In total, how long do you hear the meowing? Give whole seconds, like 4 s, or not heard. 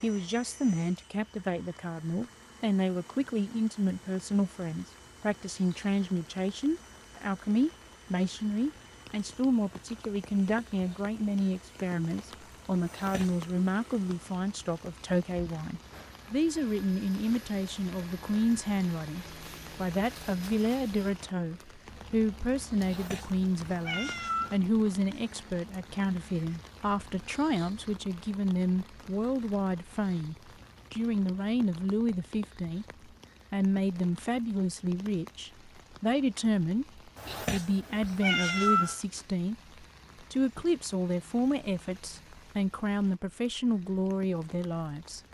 4 s.